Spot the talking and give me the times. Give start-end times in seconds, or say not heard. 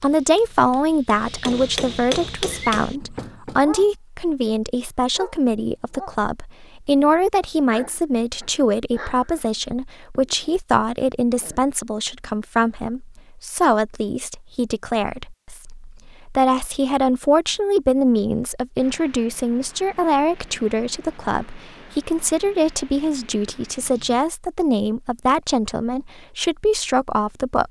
0.0-27.6.